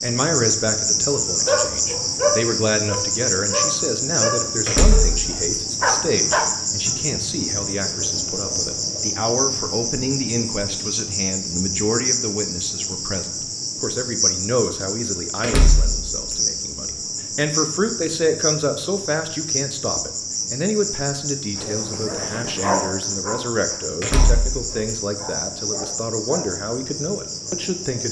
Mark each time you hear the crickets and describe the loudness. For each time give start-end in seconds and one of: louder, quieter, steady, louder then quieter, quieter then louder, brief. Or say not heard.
0.0-28.0 quieter.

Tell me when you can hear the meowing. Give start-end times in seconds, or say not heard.
not heard.